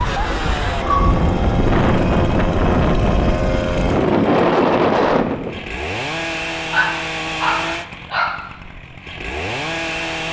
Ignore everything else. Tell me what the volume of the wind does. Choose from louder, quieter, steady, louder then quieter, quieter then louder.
louder.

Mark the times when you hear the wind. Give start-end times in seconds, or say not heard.
0.0-5.8.